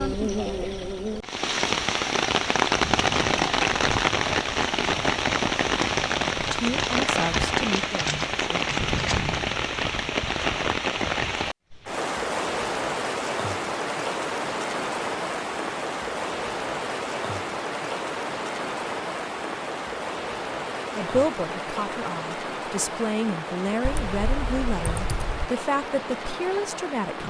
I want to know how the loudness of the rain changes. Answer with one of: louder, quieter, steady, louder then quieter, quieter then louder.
quieter.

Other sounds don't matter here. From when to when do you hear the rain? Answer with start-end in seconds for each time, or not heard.
0.0-27.2.